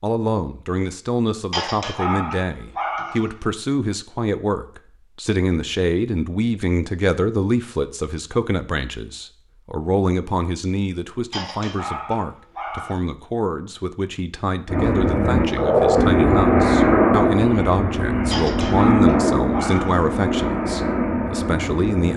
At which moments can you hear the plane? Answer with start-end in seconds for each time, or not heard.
14.7-22.1.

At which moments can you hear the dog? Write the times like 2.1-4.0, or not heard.
1.5-3.5, 11.3-13.0, 18.3-20.1.